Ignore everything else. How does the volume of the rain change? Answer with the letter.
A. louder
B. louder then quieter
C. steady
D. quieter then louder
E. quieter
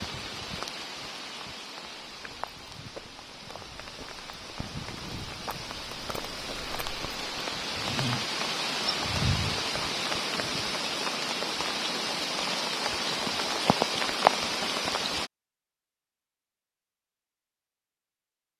A.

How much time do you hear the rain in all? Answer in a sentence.
You can hear the rain for 15 seconds altogether.